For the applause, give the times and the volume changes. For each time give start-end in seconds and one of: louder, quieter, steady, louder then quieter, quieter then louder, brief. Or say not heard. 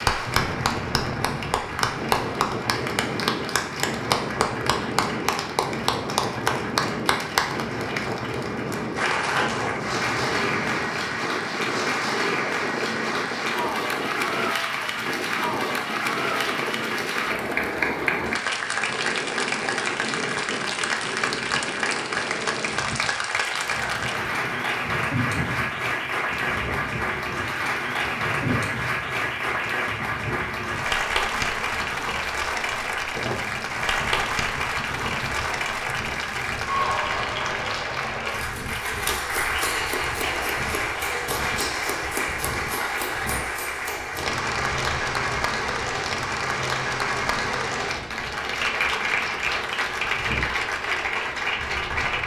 0.0-52.2 steady.